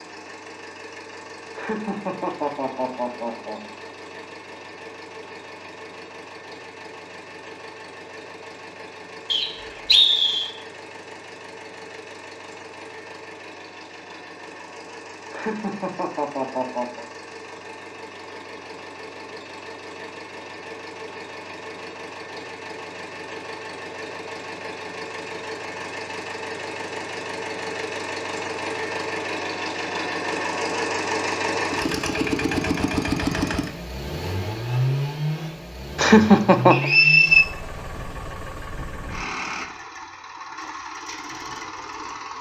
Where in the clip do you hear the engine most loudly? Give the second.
33 s.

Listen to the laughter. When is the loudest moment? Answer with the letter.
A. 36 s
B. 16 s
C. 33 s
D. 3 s
A.